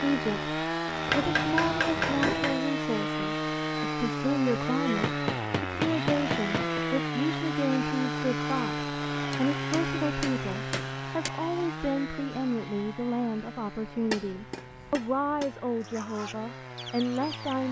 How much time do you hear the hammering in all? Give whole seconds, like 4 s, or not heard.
7 s.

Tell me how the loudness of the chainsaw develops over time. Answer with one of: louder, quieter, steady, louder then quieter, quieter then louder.
quieter.